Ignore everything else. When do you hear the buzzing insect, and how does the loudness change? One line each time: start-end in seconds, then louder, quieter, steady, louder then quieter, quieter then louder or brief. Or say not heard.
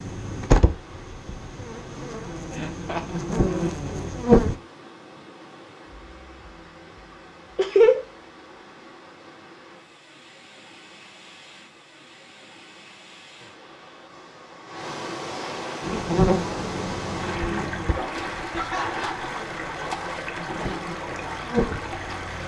0.0-4.5 quieter then louder
15.8-22.4 quieter then louder.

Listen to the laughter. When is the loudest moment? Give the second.
8 s.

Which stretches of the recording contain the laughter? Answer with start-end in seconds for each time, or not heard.
2.5-3.7, 7.5-8.0, 18.5-19.2.